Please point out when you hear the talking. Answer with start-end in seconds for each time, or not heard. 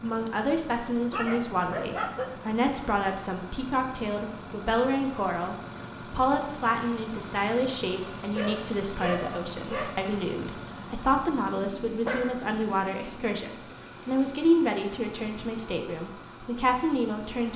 0.0-17.5.